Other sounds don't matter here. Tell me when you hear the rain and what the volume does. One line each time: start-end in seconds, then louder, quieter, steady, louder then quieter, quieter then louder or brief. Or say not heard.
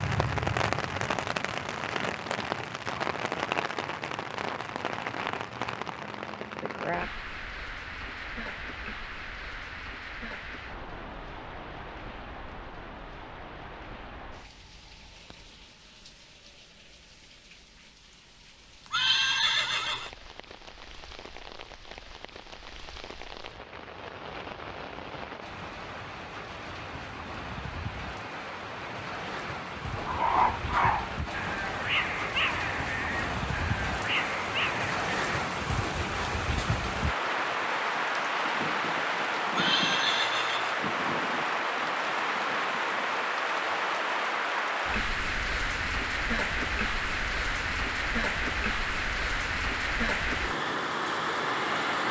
0.0-52.0 quieter then louder.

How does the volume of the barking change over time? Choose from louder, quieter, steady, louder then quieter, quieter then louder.
quieter.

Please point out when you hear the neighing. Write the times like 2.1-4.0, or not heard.
18.9-20.1, 39.5-40.8.